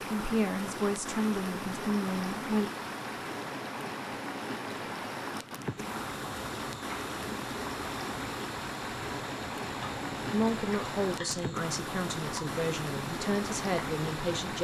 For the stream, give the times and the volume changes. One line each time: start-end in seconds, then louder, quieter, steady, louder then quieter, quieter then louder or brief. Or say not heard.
0.0-14.6 steady.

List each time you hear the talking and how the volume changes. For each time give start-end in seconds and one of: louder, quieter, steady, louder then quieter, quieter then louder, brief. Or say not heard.
0.1-2.7 brief
10.3-14.6 steady.